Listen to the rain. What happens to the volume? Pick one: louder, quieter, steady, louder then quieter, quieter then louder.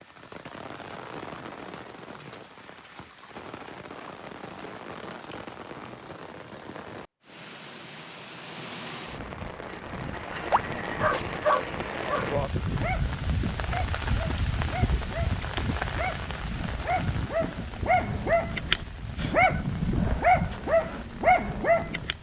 louder then quieter.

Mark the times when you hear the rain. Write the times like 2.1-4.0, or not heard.
0.0-22.1.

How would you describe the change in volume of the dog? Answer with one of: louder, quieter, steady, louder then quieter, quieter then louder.
quieter then louder.